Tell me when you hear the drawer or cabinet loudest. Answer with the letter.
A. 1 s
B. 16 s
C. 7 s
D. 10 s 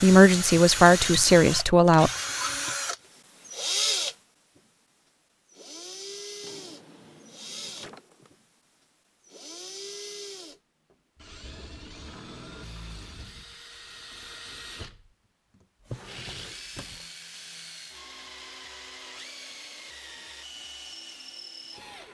B.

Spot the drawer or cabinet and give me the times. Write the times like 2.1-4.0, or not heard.
6.4-8.3, 15.8-17.1.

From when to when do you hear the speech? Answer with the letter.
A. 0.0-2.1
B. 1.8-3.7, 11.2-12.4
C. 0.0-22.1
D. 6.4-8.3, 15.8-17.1
A.